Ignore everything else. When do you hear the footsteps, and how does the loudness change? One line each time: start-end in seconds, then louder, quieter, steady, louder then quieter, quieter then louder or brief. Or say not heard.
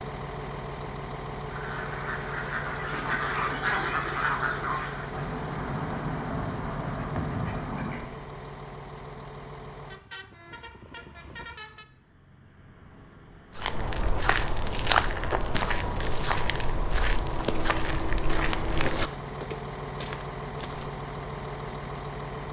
13.6-20.9 quieter.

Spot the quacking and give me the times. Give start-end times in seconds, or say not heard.
1.5-8.2.